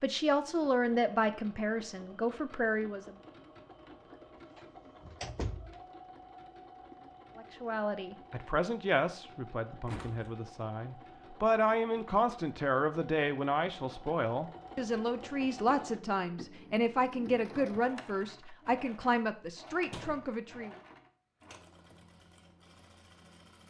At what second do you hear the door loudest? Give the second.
5 s.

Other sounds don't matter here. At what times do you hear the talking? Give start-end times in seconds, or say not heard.
0.0-3.1, 7.3-20.8.